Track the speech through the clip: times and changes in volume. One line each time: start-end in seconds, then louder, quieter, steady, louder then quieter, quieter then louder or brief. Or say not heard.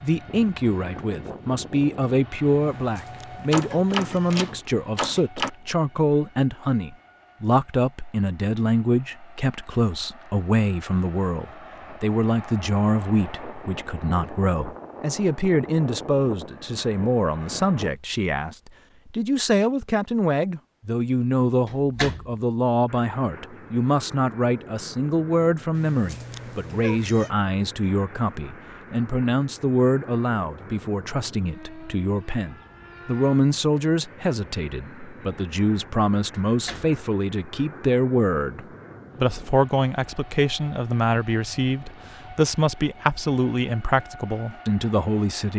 0.0-45.5 steady.